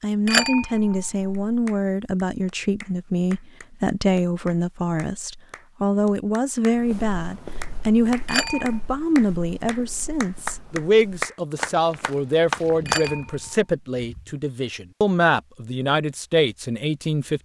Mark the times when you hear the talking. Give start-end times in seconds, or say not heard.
0.0-17.4.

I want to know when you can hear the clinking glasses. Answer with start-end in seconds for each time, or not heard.
0.2-1.6, 8.2-8.8, 12.8-13.6.